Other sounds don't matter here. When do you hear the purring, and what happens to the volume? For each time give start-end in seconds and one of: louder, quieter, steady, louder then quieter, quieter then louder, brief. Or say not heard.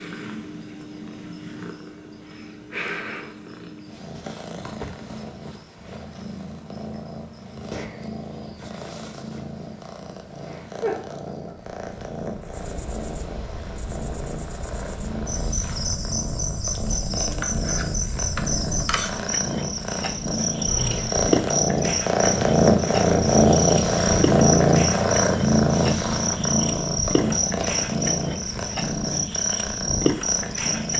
0.0-30.9 louder.